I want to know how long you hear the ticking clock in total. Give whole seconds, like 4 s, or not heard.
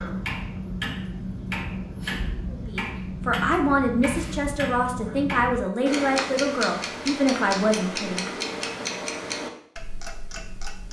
11 s.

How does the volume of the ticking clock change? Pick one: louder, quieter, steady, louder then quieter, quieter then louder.
steady.